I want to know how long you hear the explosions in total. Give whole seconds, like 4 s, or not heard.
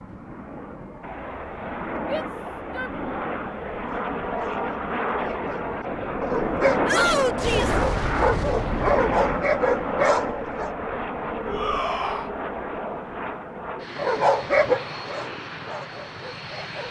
2 s.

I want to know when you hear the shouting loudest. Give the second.
7 s.